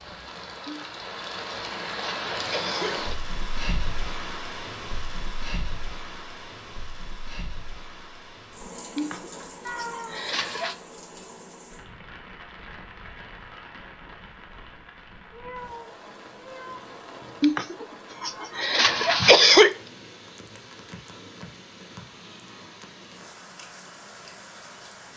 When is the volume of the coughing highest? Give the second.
19 s.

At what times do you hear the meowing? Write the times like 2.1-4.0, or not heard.
9.7-10.2, 15.3-16.8.